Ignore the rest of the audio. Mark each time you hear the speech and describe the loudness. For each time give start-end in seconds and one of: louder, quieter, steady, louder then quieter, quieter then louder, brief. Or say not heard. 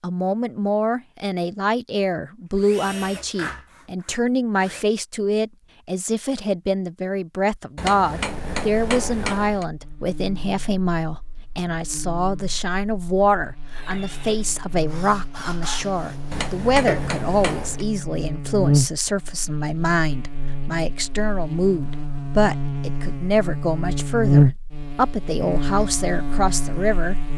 0.0-27.1 steady.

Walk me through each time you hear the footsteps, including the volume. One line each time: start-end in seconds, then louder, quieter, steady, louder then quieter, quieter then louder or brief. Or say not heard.
not heard.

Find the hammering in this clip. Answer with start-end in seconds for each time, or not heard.
7.8-9.7, 16.3-17.9.